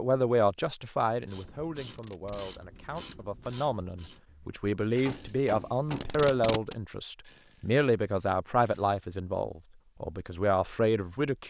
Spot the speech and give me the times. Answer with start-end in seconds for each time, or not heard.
0.0-11.4.